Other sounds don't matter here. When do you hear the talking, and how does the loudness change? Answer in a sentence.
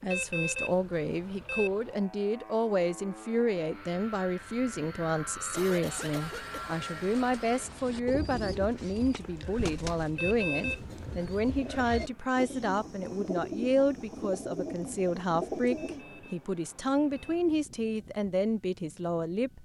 You can hear the talking from 0.0 to 19.6 s, at a steady volume.